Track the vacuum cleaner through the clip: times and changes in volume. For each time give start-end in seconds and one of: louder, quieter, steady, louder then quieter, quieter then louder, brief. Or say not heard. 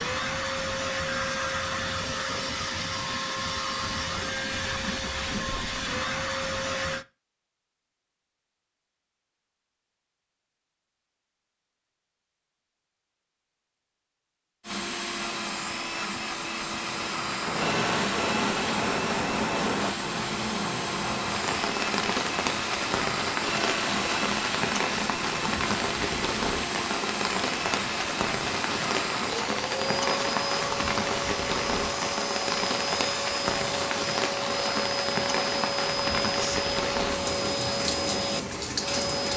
0.0-7.0 steady
14.6-39.3 steady.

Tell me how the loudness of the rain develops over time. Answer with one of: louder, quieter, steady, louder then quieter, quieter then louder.
steady.